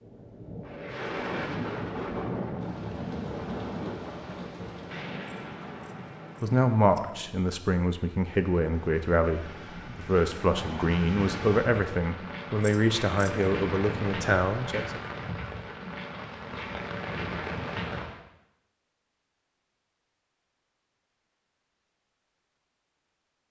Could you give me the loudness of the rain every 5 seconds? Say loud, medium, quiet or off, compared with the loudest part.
loud, medium, loud, loud, off.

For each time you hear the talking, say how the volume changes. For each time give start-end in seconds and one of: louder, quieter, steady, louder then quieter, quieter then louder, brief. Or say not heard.
6.4-15.1 steady.